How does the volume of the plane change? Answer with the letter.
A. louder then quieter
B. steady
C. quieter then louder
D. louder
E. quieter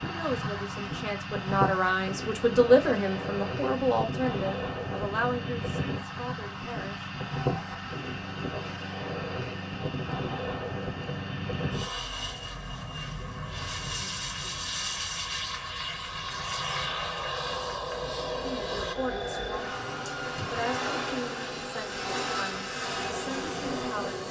B.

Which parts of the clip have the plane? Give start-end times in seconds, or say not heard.
0.0-24.2.